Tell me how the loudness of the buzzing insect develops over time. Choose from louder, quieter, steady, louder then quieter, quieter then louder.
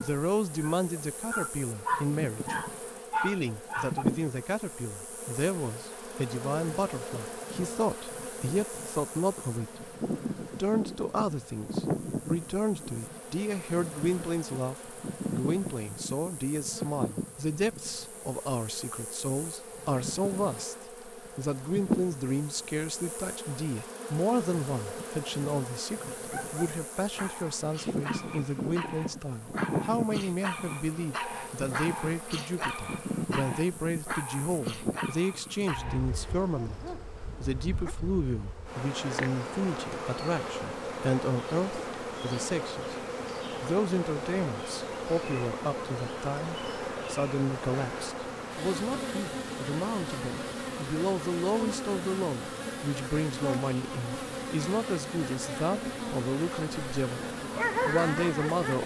steady.